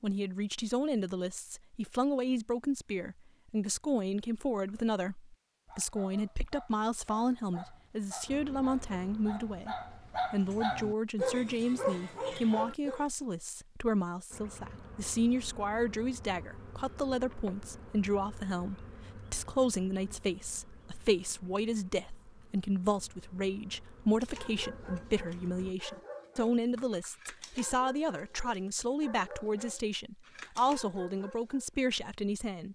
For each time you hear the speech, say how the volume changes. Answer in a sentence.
The speech can be heard from 0.0 to 32.7 s, at a steady volume.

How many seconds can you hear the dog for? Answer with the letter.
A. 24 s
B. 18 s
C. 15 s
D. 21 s
C.